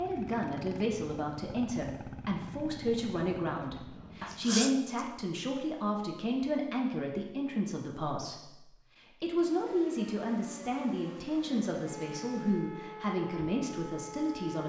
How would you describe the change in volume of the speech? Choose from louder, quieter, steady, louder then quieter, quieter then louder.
steady.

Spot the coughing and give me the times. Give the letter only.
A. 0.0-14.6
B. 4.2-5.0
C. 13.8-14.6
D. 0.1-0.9
B.